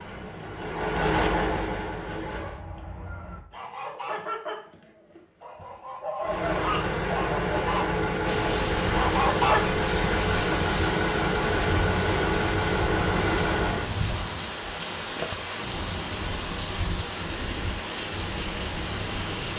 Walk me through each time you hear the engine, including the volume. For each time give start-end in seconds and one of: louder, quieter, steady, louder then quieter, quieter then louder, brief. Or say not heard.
0.0-2.6 brief
6.2-13.9 steady.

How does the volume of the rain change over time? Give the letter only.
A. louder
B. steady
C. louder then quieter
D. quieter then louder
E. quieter
B.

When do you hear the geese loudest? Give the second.
9 s.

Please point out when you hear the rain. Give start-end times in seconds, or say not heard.
8.2-19.5.